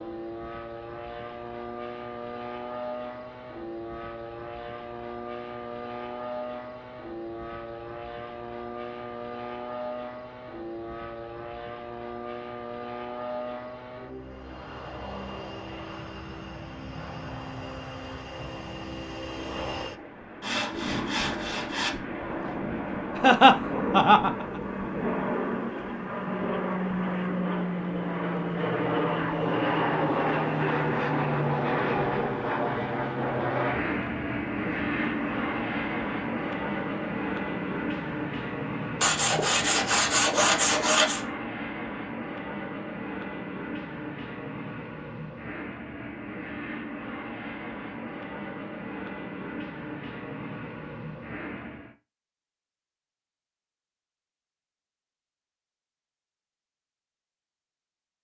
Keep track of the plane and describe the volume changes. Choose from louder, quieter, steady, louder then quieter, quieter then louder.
louder then quieter.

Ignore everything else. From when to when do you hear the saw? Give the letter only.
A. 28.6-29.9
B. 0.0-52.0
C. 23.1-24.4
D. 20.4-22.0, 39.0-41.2
D.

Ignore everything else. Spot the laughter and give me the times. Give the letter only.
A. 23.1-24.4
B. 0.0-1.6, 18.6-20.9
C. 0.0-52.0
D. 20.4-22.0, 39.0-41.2
A.